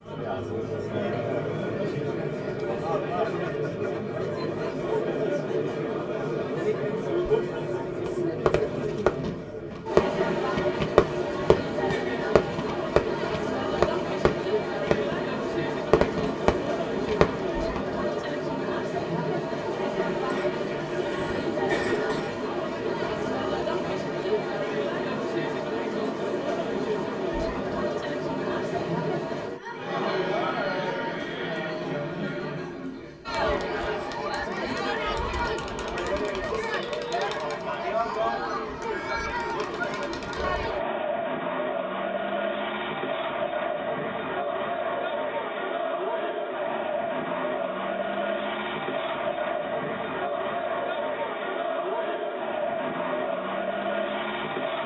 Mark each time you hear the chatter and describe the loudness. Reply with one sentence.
You can hear the chatter from 0.0 to 54.8 s, at a steady volume.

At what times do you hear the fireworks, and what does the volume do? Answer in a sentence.
You can hear the fireworks from 8.1 to 17.8 s, at a steady volume.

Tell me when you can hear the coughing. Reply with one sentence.
You can hear the coughing from 20.3 to 22.4 s.